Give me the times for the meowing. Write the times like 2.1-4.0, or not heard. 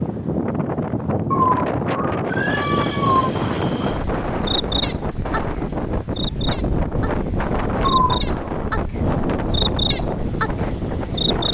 1.3-3.3, 7.8-8.3.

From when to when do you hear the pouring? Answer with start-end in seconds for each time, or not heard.
not heard.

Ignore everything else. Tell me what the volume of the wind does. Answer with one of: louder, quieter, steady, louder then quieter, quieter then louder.
steady.